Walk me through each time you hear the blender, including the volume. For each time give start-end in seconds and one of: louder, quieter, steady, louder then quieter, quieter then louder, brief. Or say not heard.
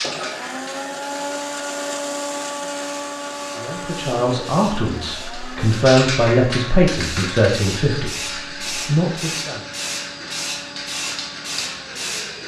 0.0-12.4 quieter.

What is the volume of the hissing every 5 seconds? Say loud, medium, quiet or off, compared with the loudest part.
medium, loud, loud.